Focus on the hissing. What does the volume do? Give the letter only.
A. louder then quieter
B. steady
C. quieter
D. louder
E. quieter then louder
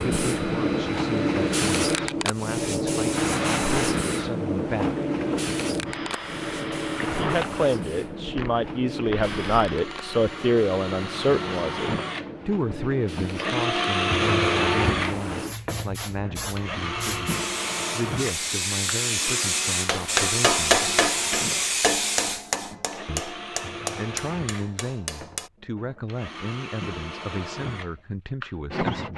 E.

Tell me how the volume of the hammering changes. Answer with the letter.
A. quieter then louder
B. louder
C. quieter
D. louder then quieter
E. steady
C.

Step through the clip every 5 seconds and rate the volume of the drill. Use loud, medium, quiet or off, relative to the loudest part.
medium, medium, loud, medium, medium, medium.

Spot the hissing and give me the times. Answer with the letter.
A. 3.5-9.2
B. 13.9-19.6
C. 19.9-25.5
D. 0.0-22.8
D.